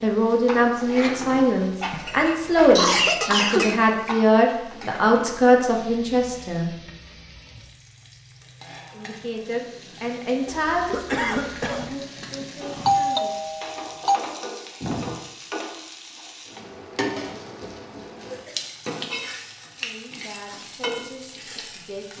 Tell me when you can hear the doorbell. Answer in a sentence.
You can hear the doorbell from 12.2 to 14.2 s.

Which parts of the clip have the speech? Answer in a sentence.
You can hear the speech from 0.0 to 6.7 s, from 8.9 to 13.4 s and from 19.8 to 22.1 s.